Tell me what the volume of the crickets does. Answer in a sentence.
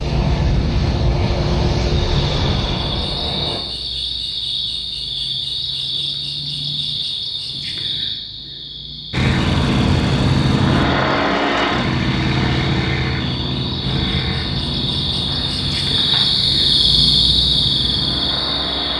The volume of the crickets goes down, then up.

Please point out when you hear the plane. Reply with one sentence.
You can hear the plane from 0.0 to 3.6 s and from 9.1 to 18.9 s.